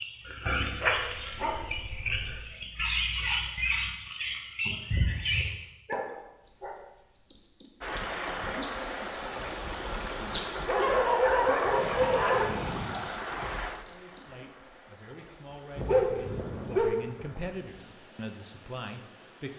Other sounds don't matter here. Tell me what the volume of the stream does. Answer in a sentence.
The volume of the stream goes down.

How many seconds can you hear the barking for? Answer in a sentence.
You can hear the barking for 7 seconds altogether.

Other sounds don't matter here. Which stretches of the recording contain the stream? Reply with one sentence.
You can hear the stream from 7.8 to 19.5 s.